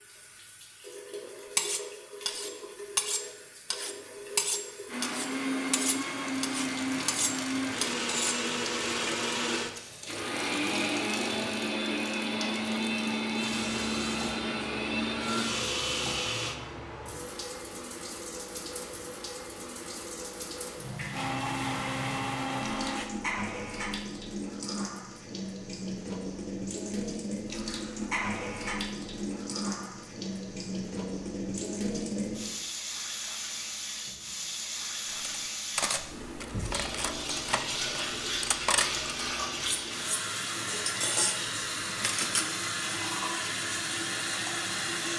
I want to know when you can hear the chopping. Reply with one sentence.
The chopping can't be heard in this clip.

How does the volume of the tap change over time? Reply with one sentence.
The volume of the tap goes up.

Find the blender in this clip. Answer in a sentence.
You can hear the blender from 4.8 to 16.6 s and from 21.1 to 23.1 s.